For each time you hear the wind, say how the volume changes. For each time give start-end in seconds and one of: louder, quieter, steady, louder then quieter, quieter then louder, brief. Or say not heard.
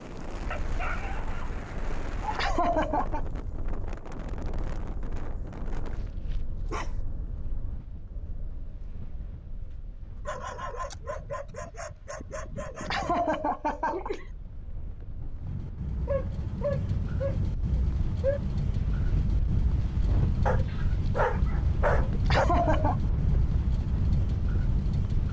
0.0-25.2 quieter then louder.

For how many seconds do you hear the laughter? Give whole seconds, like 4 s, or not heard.
3 s.